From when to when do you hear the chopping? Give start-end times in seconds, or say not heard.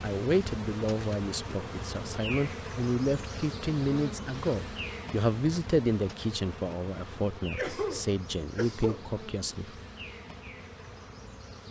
not heard.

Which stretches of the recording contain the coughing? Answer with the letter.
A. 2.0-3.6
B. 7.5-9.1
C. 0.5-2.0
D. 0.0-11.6
B.